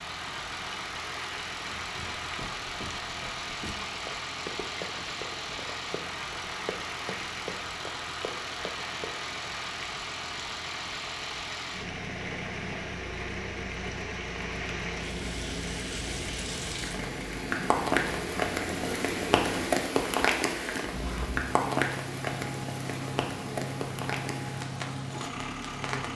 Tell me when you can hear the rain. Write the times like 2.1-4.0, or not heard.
0.0-26.1.